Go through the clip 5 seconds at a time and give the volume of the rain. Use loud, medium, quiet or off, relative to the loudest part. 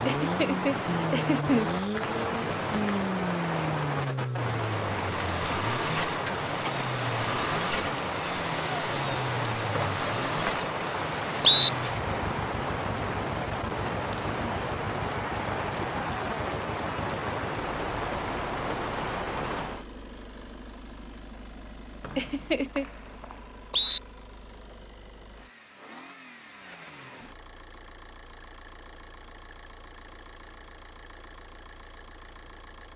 loud, loud, loud, loud, off, off, off.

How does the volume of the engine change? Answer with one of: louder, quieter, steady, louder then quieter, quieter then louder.
quieter.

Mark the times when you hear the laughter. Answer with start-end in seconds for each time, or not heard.
0.1-1.7, 22.1-22.9.